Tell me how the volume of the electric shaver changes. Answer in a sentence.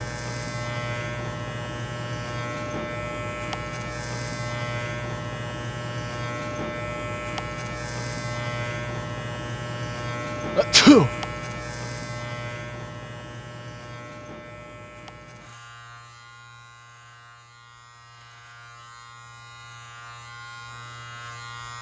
The loudness of the electric shaver goes down.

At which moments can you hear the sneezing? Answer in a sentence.
The sneezing can be heard from 10.6 to 11.1 s.